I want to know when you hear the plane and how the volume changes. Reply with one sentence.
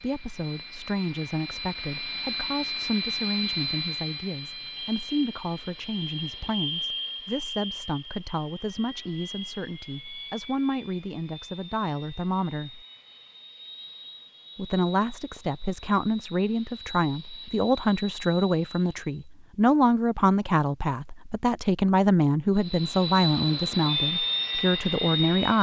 The plane can be heard from 0.0 to 19.1 s, getting quieter; and briefly from 22.6 to 25.5 s.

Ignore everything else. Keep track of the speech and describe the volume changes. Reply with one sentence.
The loudness of the speech goes up.